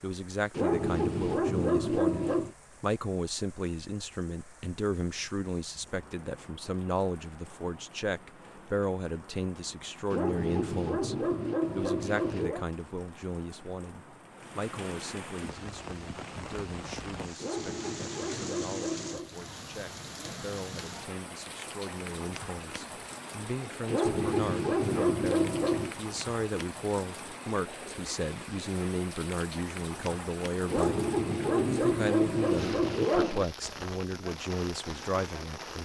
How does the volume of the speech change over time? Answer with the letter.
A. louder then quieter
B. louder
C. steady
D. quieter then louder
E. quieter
D.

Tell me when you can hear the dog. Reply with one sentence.
The dog can be heard from 0.5 to 2.5 s, from 10.1 to 12.7 s, from 17.4 to 19.3 s, from 23.9 to 25.9 s and from 30.6 to 33.5 s.